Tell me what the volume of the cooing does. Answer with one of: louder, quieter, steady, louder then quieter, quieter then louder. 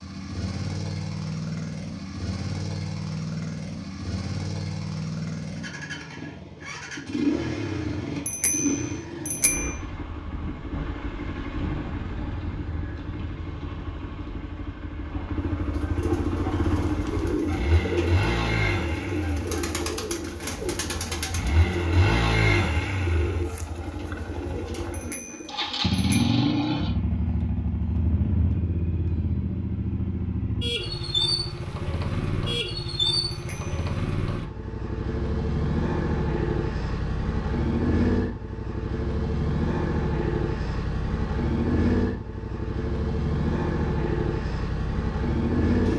quieter.